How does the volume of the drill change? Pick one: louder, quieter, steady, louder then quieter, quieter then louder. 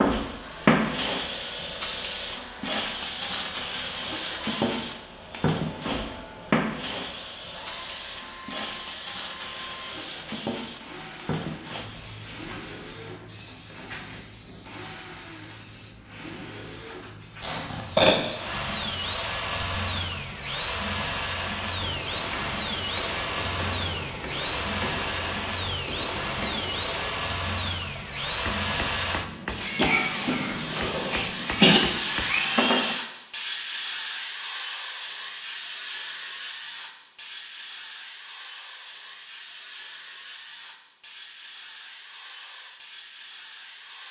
louder.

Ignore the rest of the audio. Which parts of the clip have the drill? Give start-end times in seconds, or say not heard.
0.2-33.0.